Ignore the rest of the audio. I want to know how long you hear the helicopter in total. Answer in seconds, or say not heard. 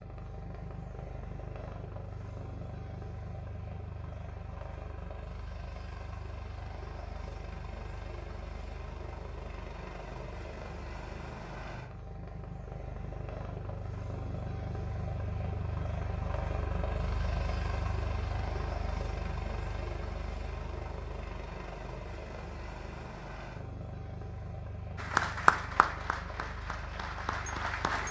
28 s.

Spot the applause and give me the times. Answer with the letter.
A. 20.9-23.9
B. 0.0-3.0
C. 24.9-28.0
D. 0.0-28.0
C.